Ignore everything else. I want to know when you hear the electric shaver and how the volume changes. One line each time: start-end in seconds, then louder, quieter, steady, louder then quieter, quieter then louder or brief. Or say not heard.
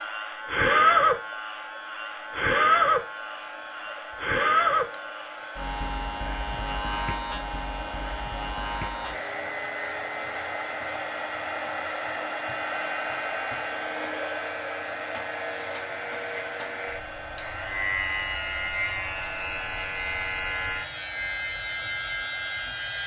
0.0-23.0 quieter then louder.